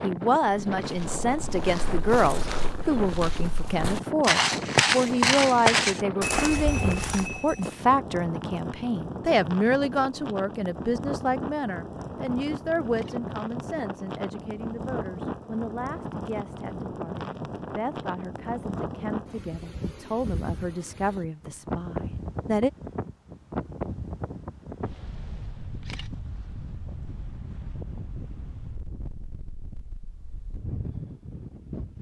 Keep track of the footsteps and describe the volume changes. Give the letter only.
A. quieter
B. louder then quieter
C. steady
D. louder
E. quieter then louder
B.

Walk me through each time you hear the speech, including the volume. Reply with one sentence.
You can hear the speech from 0.0 to 22.7 s, getting quieter.